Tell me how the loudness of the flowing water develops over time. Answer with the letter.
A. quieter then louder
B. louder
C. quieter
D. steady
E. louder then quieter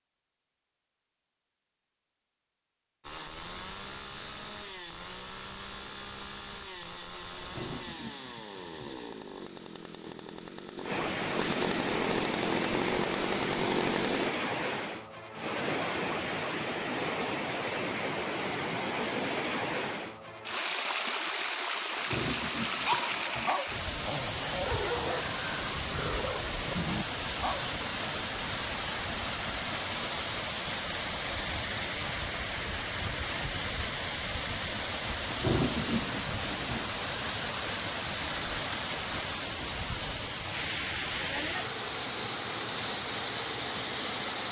D.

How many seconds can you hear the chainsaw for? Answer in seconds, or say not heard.
11 s.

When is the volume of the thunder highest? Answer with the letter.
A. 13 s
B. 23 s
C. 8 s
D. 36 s
D.